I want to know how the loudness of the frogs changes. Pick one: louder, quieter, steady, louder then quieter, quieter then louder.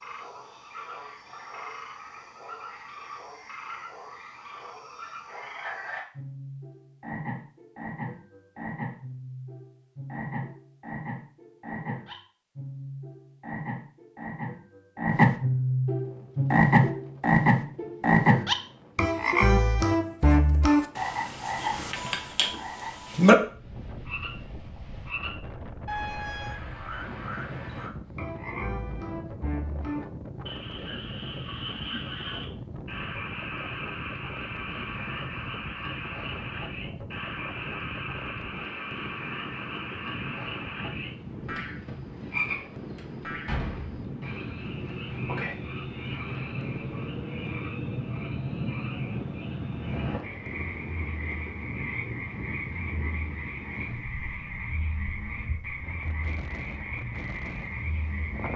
louder then quieter.